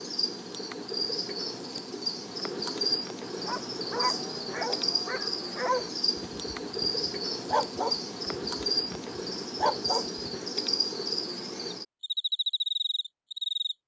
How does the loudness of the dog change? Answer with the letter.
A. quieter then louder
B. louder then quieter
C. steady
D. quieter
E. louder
A.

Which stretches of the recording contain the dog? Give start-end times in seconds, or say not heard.
3.4-10.2.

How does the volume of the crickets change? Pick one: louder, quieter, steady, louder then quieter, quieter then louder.
steady.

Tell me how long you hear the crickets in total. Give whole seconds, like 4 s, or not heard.
14 s.